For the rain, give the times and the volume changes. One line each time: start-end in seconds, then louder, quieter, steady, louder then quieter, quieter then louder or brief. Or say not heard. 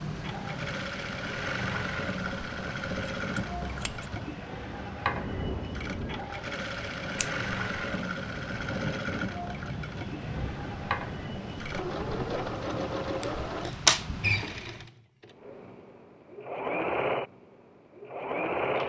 0.0-14.9 steady.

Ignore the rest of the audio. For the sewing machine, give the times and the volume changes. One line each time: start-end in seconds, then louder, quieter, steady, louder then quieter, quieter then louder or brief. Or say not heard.
0.0-18.8 steady.